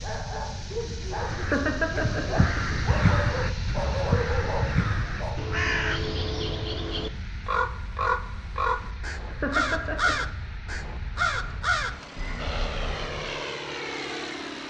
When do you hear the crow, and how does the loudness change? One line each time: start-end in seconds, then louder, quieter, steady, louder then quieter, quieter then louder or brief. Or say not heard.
1.1-13.2 steady.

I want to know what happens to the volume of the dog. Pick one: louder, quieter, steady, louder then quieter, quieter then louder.
quieter then louder.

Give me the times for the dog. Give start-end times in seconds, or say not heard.
0.0-5.4.